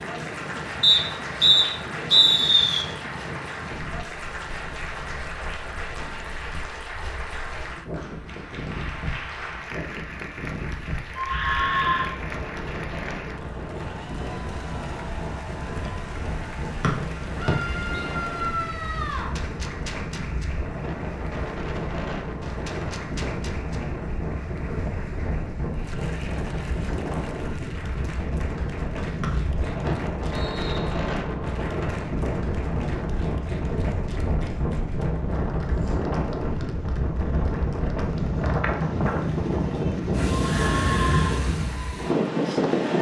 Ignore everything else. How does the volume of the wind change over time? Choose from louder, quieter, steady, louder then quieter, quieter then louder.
louder.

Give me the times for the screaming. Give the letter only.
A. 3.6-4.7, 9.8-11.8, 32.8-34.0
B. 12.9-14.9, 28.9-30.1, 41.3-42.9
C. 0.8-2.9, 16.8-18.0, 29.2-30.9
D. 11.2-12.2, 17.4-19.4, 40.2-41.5
D.